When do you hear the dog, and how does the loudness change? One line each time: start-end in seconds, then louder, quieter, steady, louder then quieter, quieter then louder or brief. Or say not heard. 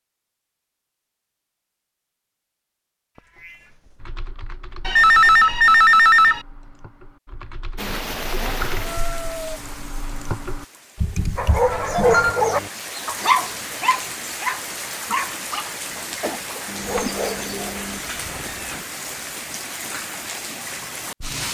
11.3-18.4 quieter.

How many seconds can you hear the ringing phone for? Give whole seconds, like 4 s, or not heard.
2 s.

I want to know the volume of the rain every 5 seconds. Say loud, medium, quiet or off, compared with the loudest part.
off, loud, loud, loud, loud.